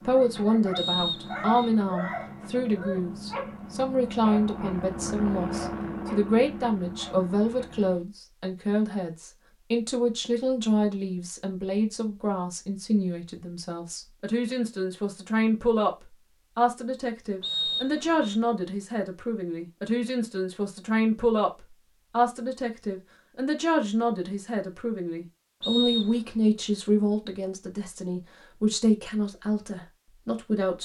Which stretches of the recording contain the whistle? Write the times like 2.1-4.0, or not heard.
0.8-1.7, 17.4-18.4, 25.6-26.2.